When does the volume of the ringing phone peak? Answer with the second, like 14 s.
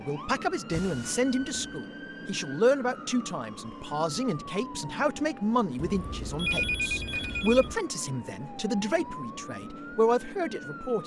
7 s.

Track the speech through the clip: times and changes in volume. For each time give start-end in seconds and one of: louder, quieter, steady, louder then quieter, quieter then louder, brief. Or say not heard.
0.0-11.0 steady.